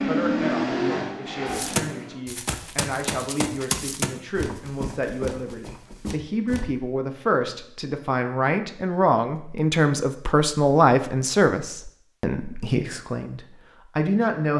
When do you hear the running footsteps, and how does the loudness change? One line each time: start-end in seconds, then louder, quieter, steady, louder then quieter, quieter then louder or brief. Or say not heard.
1.4-6.7 louder then quieter.